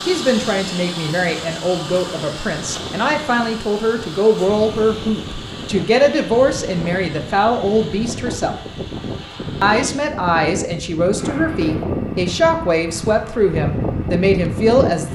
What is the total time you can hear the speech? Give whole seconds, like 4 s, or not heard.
14 s.